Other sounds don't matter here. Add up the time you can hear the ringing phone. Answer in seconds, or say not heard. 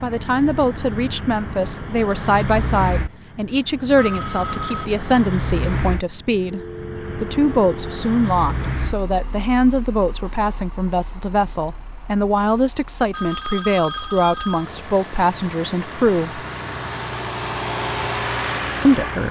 4 s.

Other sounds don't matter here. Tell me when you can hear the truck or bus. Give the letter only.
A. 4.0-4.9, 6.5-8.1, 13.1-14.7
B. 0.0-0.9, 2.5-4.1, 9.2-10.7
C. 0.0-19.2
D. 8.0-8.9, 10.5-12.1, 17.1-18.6
C.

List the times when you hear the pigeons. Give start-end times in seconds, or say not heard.
not heard.